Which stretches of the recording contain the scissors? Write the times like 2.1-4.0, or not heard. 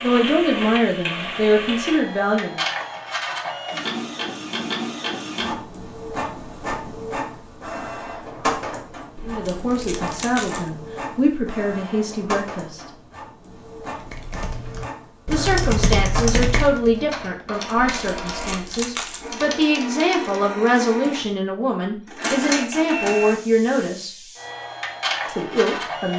9.2-10.7, 17.8-19.3.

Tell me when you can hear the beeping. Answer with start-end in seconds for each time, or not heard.
not heard.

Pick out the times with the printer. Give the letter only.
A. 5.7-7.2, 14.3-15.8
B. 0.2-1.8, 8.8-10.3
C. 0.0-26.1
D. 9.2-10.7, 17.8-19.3
C.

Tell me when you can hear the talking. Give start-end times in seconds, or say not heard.
0.0-2.6, 9.2-12.8, 15.2-24.2, 25.2-26.1.